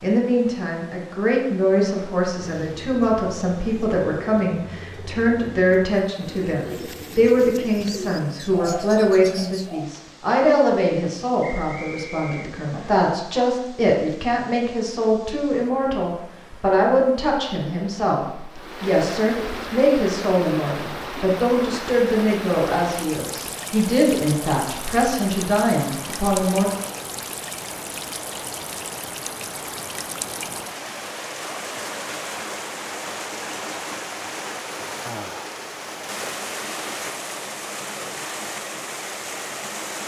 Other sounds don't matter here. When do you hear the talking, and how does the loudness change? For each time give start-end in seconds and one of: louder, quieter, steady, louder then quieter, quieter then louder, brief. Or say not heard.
0.0-26.6 steady.